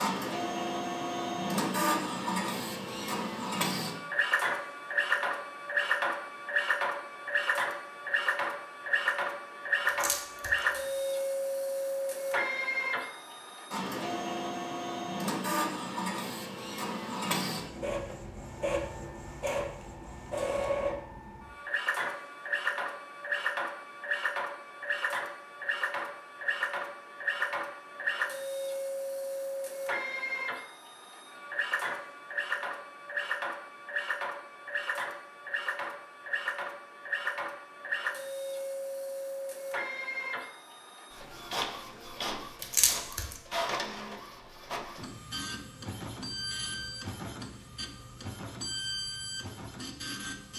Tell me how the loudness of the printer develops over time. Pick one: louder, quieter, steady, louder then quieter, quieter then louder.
quieter.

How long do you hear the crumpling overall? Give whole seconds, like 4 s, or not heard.
2 s.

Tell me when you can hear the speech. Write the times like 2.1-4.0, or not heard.
not heard.